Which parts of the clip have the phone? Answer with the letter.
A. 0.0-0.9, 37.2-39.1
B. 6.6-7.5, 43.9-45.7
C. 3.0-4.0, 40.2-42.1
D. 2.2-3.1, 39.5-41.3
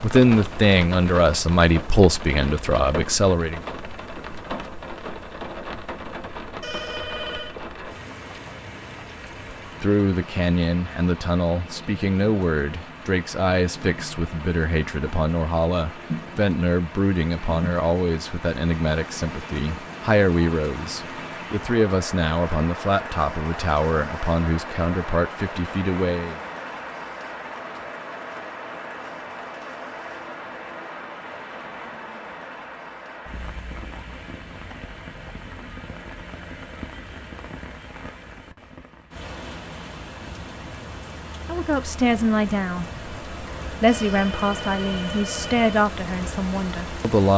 B.